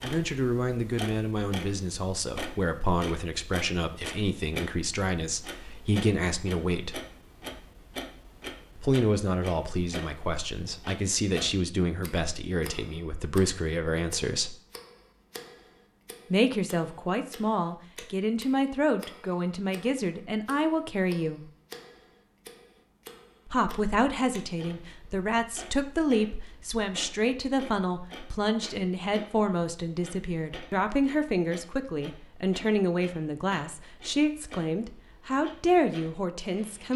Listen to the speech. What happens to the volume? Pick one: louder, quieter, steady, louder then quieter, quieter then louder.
steady.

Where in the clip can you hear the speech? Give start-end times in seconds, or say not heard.
0.0-7.0, 8.8-14.6, 16.3-21.4, 23.4-36.9.